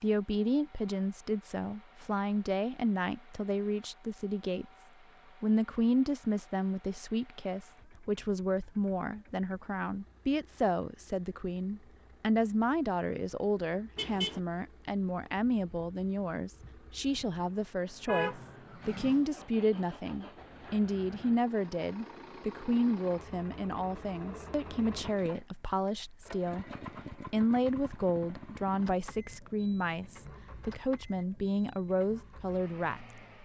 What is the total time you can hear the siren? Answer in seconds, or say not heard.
not heard.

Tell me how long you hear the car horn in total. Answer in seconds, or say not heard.
2 s.